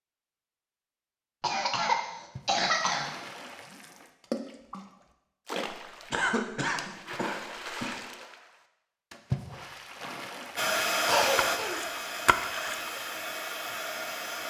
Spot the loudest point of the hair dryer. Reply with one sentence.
The loudest moment of the hair dryer is at 11 seconds.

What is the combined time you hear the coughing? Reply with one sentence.
You can hear the coughing for 4 seconds altogether.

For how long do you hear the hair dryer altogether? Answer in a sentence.
You can hear the hair dryer for 4 seconds altogether.